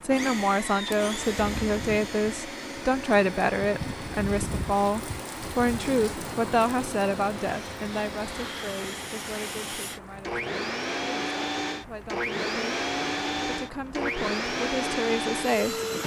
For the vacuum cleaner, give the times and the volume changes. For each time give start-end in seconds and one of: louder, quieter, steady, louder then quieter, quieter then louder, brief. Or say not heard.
0.0-16.0 quieter then louder.